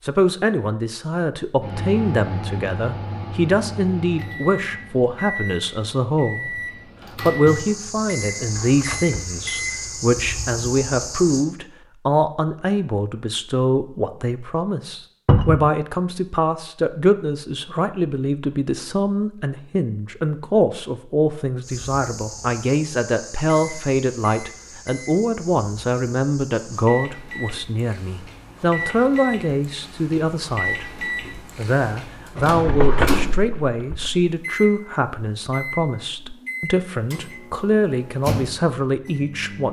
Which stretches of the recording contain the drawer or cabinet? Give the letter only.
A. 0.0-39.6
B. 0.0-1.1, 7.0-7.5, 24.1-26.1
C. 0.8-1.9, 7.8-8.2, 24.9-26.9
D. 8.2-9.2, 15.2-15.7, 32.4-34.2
D.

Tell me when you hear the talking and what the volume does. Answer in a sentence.
You can hear the talking from 0.0 to 39.6 s, at a steady volume.